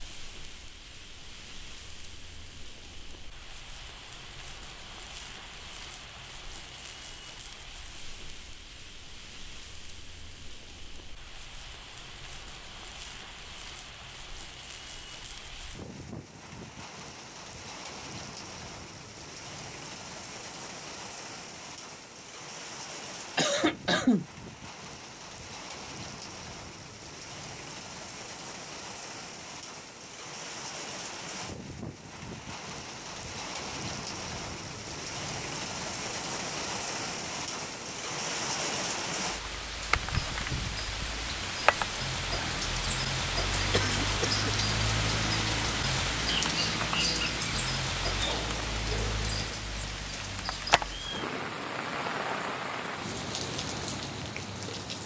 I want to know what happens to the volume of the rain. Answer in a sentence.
The loudness of the rain goes up.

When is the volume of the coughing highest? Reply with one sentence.
The loudest moment of the coughing is at 24 seconds.